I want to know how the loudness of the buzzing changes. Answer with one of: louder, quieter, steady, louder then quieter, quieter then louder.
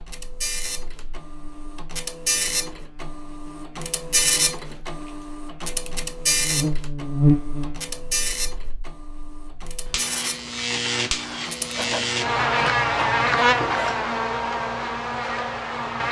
louder.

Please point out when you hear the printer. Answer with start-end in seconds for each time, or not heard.
0.0-14.0.